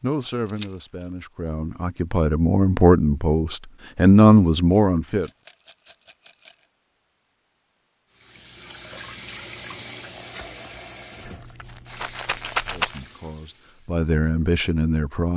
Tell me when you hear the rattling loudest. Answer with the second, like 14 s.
13 s.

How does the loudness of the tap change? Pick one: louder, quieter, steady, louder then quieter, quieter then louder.
quieter.